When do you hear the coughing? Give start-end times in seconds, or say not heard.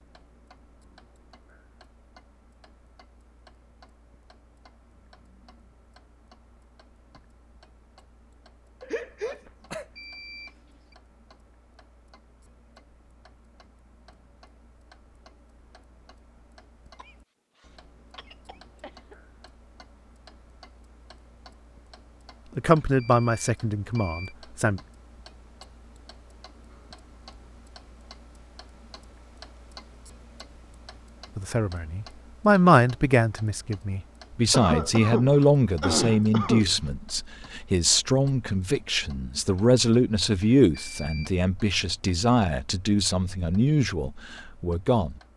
8.8-9.9, 16.9-19.1, 34.5-36.7.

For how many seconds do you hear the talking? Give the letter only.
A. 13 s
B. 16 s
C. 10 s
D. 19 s
B.